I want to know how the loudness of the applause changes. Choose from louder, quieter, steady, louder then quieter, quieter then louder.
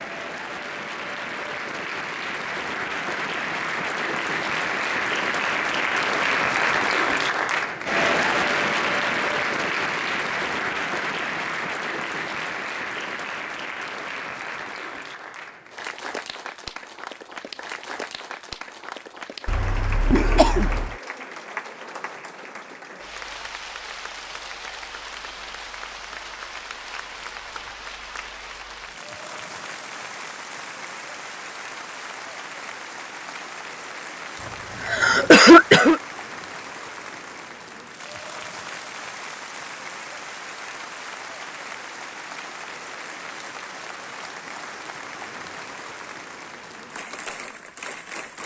quieter.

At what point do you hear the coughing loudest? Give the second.
35 s.